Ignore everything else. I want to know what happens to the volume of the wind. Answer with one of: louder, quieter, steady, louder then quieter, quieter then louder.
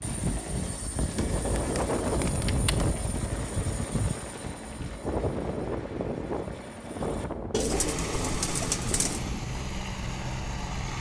quieter.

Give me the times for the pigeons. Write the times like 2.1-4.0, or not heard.
1.1-2.9, 7.5-9.2.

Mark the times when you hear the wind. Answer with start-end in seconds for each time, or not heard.
0.0-10.9.